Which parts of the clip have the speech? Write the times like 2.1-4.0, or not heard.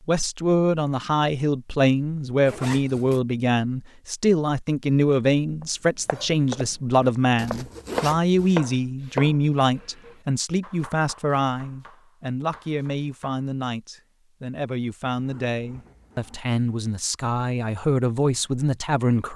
0.1-19.3.